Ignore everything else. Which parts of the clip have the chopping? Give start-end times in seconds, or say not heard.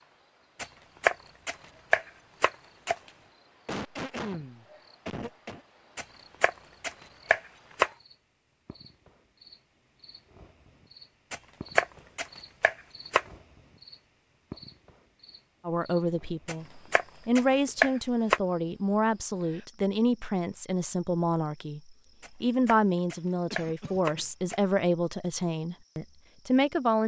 0.6-3.0, 6.0-7.9, 11.3-13.2, 16.4-18.4, 22.2-24.6.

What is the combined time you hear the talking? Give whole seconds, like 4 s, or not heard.
11 s.